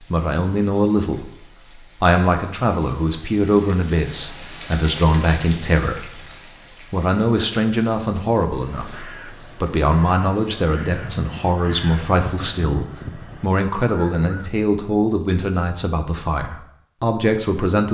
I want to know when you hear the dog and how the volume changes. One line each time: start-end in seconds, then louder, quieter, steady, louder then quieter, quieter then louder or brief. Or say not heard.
not heard.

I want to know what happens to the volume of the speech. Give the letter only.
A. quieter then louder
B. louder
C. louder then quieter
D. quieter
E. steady
E.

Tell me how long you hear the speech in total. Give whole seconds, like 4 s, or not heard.
17 s.